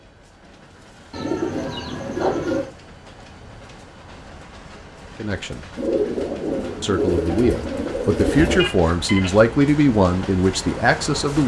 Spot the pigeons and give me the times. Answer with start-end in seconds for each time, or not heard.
1.1-2.7, 5.8-8.7.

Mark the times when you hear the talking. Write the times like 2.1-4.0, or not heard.
5.2-5.7, 6.8-11.4.